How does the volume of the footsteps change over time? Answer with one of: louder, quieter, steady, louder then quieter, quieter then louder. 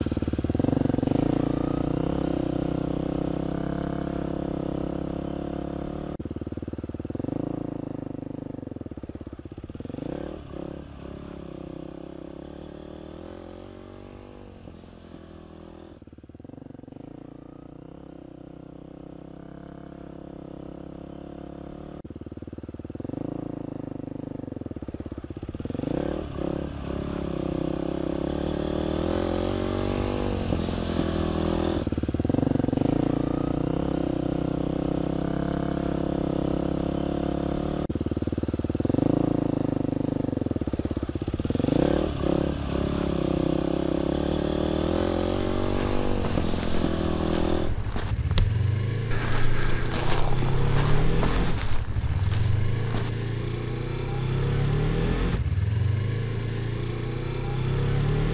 louder then quieter.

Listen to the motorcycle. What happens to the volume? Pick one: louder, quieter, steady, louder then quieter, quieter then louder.
quieter then louder.